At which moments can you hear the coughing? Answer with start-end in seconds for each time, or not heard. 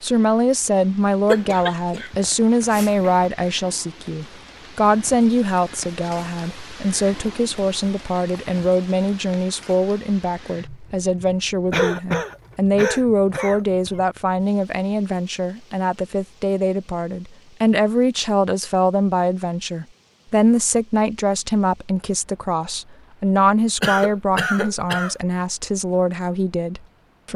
1.2-3.3, 11.7-13.9, 23.8-25.1.